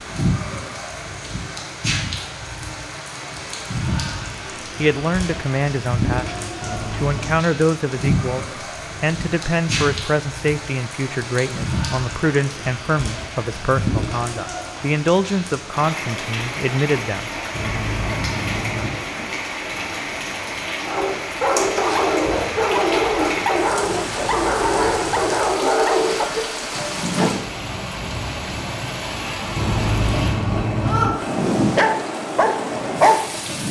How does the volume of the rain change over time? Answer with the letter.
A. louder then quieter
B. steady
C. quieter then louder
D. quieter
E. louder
B.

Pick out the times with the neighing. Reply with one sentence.
The neighing can be heard from 6.6 to 7.5 s, from 17.5 to 19.1 s and from 29.6 to 31.1 s.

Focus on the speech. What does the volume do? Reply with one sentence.
The loudness of the speech stays about the same.